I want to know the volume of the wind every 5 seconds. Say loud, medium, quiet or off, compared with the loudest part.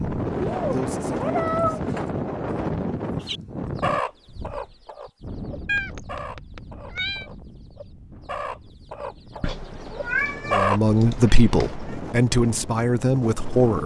loud, quiet, medium.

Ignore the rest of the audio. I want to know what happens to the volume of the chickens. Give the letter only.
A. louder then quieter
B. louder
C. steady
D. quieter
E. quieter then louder
E.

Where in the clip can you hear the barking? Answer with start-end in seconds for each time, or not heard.
not heard.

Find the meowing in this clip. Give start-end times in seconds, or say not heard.
0.4-2.1, 5.7-7.2, 9.4-11.9.